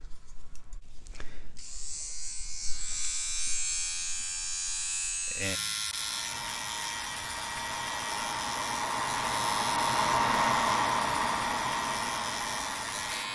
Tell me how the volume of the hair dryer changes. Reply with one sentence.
The volume of the hair dryer goes up, then down.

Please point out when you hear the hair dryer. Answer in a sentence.
The hair dryer can be heard from 5.8 to 13.2 s.